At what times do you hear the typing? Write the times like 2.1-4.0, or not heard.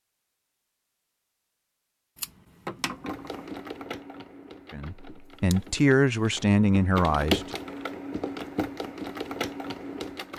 2.9-10.3.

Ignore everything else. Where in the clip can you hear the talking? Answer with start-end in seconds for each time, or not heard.
4.7-7.6.